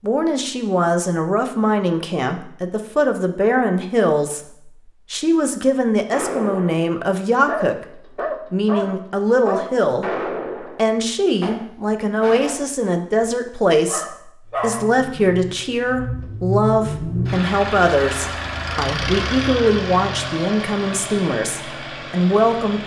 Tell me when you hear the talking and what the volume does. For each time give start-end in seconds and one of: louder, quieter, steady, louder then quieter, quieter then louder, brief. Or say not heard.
0.0-22.8 steady.